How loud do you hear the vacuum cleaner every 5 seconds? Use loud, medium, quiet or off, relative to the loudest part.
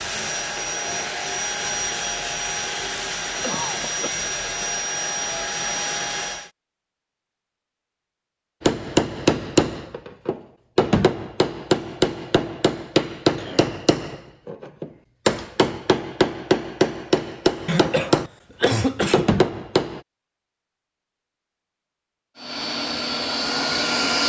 loud, loud, off, off, loud.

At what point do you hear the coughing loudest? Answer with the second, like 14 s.
19 s.